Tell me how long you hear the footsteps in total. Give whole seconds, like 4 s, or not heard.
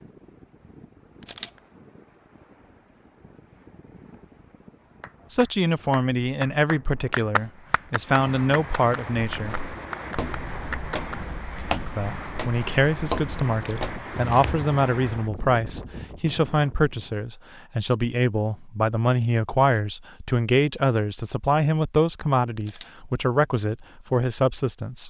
6 s.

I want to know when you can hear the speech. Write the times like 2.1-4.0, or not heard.
5.3-9.6, 11.8-25.0.